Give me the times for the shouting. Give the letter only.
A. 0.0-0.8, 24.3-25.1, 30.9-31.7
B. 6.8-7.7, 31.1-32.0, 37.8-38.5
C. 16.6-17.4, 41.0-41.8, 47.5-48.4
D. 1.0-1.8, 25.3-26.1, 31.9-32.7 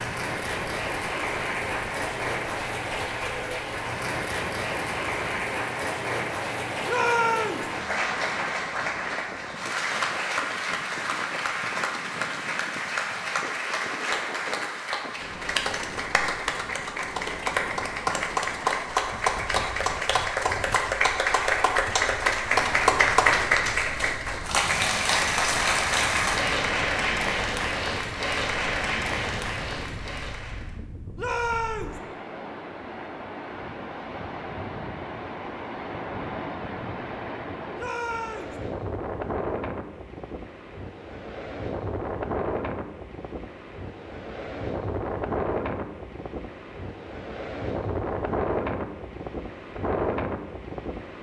B.